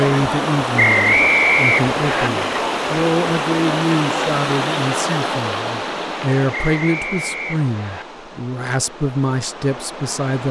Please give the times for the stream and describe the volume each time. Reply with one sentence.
The stream can be heard from 0.0 to 10.4 s, getting quieter.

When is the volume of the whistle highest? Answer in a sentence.
The volume of the whistle peaks at 1 second.